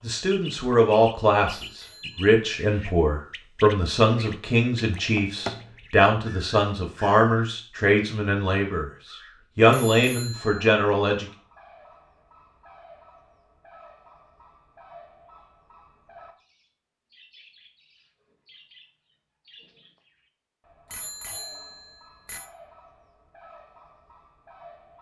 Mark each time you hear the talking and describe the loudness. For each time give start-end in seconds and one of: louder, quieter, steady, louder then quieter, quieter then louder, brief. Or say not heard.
0.0-11.2 steady.